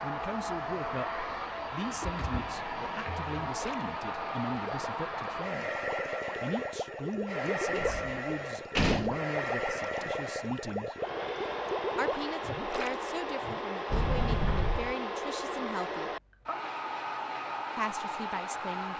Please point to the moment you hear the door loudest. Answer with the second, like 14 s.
9 s.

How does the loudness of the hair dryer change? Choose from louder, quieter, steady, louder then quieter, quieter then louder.
steady.